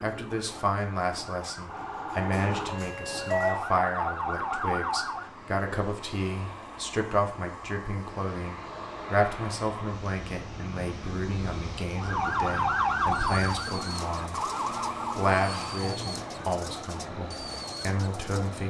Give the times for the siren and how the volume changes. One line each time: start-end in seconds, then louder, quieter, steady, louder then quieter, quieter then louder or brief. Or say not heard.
0.1-5.3 louder
11.9-18.6 quieter.